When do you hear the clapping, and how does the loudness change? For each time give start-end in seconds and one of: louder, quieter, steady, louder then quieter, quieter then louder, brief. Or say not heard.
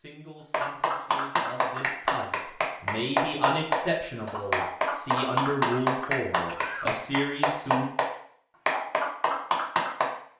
0.5-8.1 steady
8.7-10.1 brief.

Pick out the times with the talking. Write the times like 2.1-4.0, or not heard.
0.0-7.8.